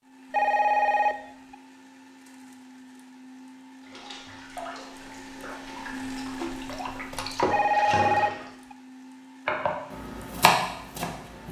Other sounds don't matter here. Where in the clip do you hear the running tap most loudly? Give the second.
8 s.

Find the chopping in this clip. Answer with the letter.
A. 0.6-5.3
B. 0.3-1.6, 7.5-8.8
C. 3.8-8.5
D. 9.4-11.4
D.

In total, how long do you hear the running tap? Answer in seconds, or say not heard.
5 s.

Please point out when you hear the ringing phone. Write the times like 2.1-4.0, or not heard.
0.3-1.6, 7.5-8.8.